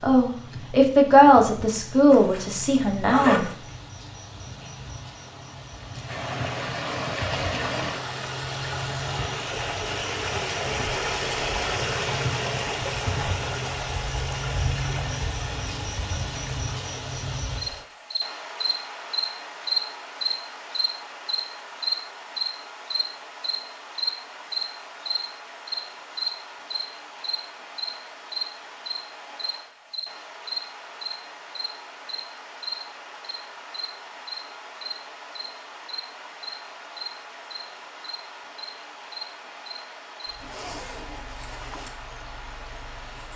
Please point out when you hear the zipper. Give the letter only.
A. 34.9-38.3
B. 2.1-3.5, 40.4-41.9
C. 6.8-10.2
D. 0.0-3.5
B.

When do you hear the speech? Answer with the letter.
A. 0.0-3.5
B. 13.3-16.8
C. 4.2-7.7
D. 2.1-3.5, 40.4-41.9
A.